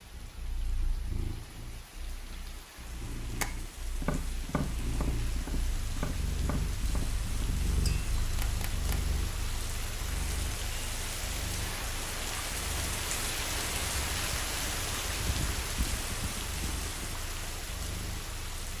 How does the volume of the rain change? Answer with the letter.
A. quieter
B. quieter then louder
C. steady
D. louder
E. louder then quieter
D.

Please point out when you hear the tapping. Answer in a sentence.
The tapping can be heard from 3.4 to 9.0 s.